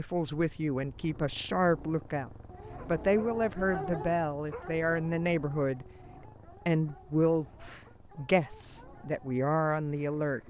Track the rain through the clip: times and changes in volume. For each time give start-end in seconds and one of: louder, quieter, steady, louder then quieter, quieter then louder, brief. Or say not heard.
not heard.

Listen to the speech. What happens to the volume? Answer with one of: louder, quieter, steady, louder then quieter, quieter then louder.
steady.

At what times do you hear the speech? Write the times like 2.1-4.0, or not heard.
0.0-10.4.